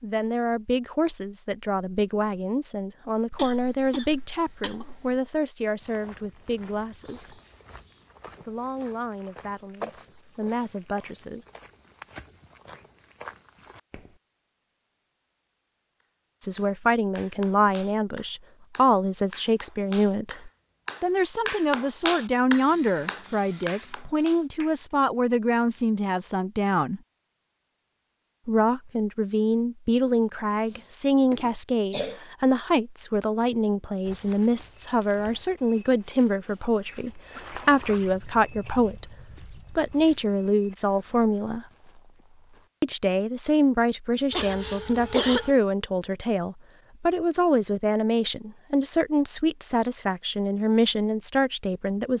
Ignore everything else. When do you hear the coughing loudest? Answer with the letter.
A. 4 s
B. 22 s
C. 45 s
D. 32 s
C.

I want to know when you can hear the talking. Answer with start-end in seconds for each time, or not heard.
0.0-7.4, 8.4-11.4, 16.4-27.0, 28.4-41.6, 42.8-52.1.